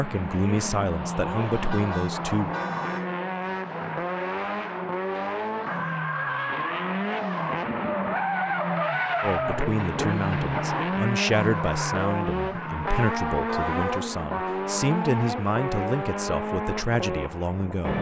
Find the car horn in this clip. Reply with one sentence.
You can hear the car horn from 1.7 to 3.1 s and from 13.4 to 14.1 s.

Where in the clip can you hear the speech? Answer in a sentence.
The speech can be heard from 0.0 to 2.5 s and from 9.2 to 17.9 s.